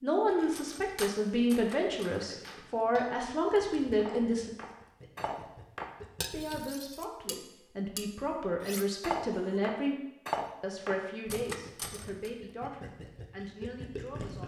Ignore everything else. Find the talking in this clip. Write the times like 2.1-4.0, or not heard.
0.0-4.5, 6.2-9.9, 10.6-14.4.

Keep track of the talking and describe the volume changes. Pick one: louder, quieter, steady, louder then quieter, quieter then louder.
quieter.